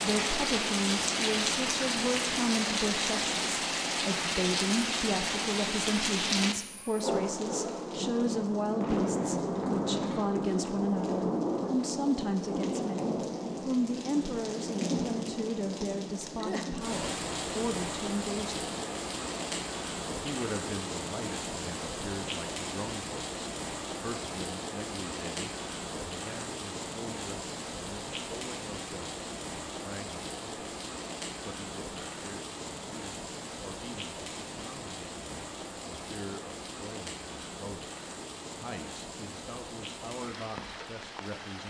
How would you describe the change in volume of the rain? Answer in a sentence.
The volume of the rain goes down.